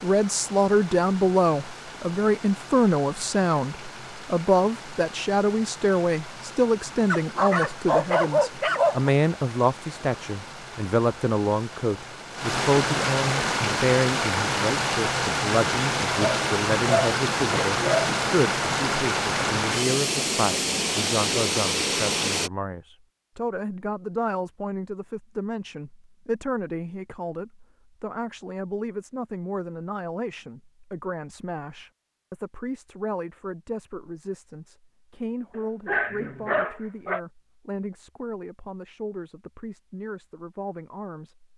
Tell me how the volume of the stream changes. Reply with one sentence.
The loudness of the stream goes up.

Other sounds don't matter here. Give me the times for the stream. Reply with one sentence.
The stream can be heard from 0.0 to 22.5 s.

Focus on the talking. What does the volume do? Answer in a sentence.
The volume of the talking goes down.